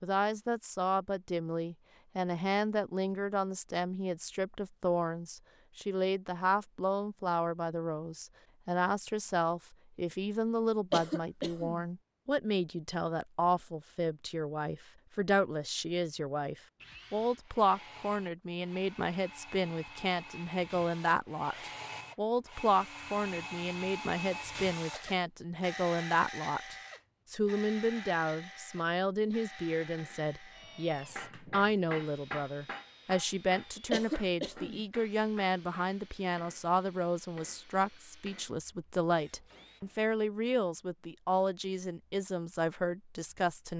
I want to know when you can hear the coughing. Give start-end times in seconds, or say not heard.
10.9-11.8, 33.9-34.8.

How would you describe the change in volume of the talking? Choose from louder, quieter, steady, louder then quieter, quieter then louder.
steady.